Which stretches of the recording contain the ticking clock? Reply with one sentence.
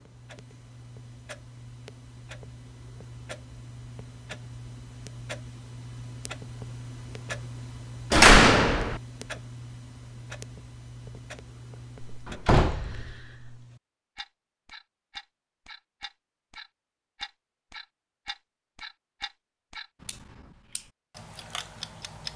The ticking clock can be heard from 0.0 to 22.3 s.